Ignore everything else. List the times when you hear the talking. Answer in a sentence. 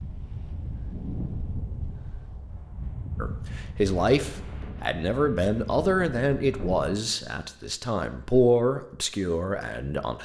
The talking can be heard from 3.2 to 10.1 s.